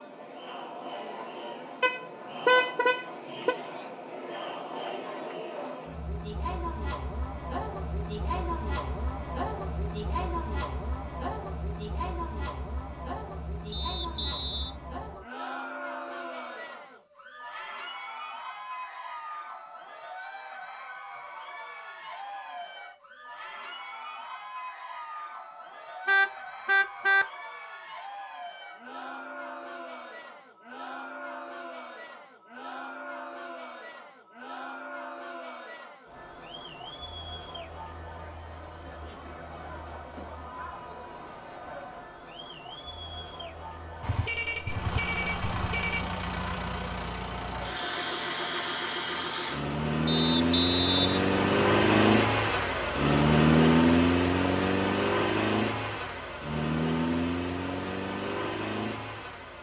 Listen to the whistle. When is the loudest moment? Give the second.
51 s.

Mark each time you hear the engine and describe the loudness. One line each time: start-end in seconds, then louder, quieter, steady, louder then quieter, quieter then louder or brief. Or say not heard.
44.6-59.5 louder then quieter.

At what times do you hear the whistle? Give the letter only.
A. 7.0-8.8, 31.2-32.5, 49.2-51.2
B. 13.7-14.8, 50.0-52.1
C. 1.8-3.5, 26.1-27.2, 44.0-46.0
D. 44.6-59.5
B.